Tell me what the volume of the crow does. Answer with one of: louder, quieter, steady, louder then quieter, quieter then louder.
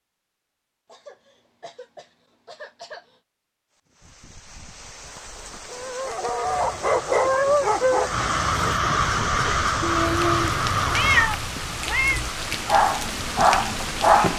louder then quieter.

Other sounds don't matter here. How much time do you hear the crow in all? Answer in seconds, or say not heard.
8 s.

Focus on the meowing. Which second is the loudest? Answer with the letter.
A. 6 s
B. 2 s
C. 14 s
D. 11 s
D.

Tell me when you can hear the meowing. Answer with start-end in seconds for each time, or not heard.
9.8-12.2.